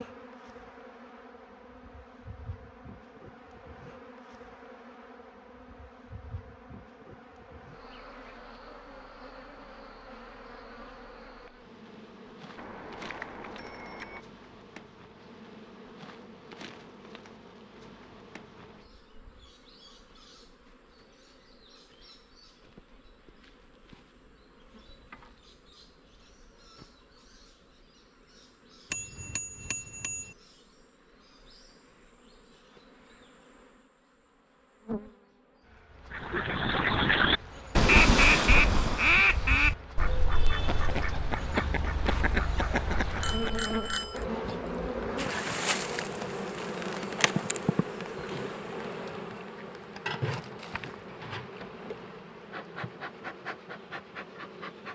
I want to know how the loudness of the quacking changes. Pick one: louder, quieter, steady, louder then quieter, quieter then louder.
quieter.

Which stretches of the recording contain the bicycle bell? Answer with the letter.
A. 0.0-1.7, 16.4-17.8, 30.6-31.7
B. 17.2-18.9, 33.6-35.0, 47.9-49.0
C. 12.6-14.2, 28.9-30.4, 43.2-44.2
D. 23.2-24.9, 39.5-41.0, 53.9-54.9
C.